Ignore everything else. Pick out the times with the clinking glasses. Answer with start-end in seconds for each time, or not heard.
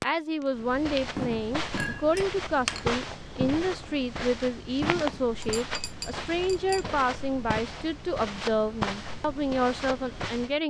1.8-2.9, 5.4-6.9.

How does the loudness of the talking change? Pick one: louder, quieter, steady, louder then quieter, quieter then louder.
steady.